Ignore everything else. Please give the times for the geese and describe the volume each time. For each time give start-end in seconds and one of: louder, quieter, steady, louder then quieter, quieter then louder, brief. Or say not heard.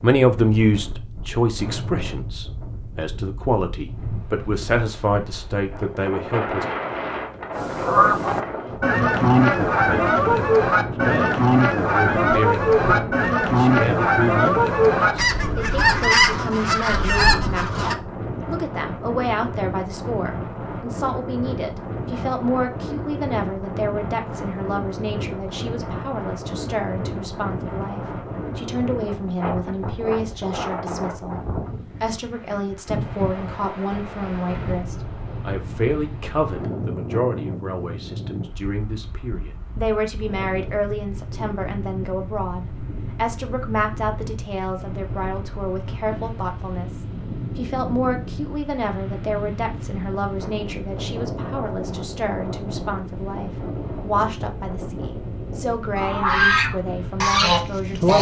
7.5-17.9 steady
56.0-58.1 brief.